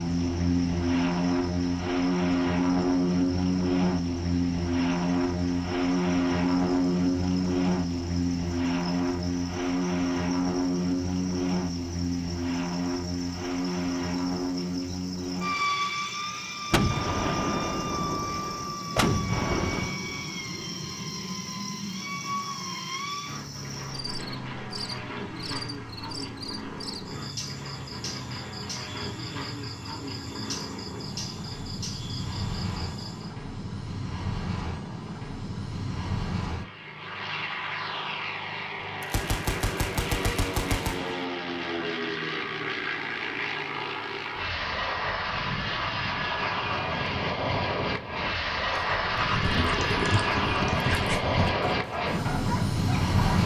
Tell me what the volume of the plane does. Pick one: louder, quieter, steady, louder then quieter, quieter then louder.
quieter then louder.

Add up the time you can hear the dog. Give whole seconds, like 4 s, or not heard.
5 s.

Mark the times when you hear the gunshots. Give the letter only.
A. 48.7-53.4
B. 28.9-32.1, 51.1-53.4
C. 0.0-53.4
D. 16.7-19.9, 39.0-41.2
D.